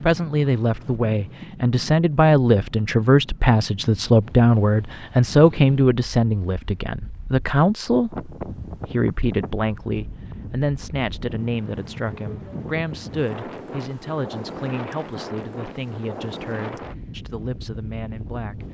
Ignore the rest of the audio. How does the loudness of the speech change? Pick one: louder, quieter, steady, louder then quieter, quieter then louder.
quieter.